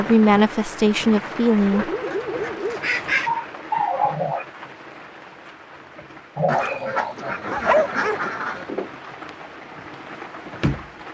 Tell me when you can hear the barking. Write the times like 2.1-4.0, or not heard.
1.7-4.5, 6.3-8.2.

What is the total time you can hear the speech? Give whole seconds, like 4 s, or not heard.
2 s.